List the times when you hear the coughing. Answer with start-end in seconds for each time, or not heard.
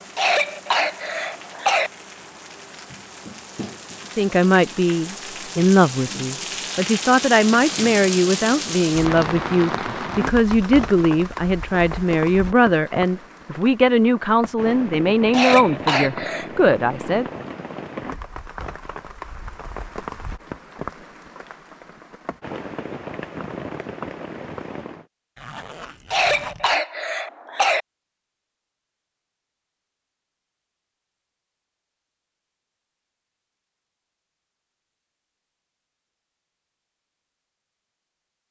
0.1-1.9, 15.3-16.5, 26.1-27.8.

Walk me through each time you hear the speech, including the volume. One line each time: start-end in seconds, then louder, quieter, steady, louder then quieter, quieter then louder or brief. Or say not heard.
4.2-17.2 steady.